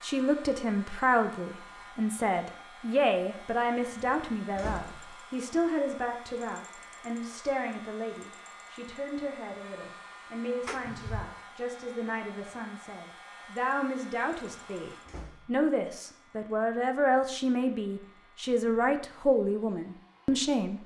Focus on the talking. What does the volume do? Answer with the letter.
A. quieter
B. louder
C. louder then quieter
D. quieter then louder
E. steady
D.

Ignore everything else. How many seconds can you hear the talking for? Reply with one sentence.
The talking can be heard for 21 seconds in total.